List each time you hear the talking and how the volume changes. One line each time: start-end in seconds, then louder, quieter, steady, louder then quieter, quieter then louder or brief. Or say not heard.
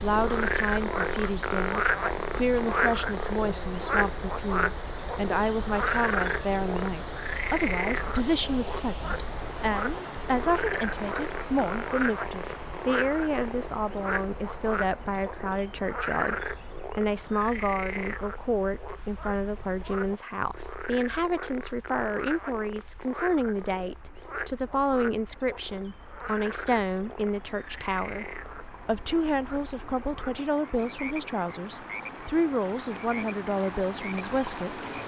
0.0-34.8 steady.